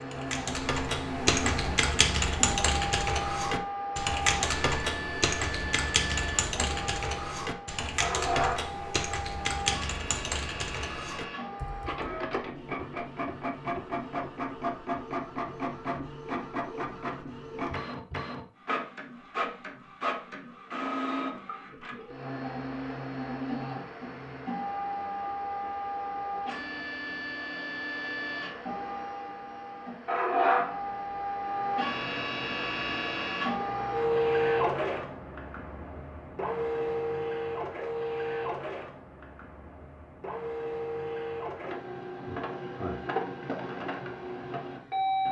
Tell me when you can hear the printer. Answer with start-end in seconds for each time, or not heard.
0.0-45.2.